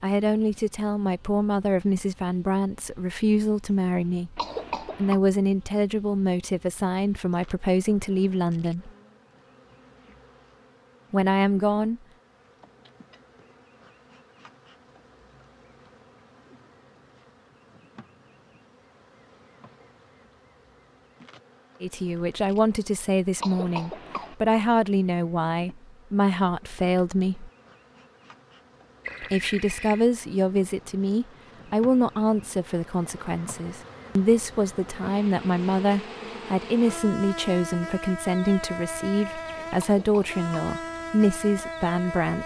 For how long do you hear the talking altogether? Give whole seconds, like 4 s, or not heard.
29 s.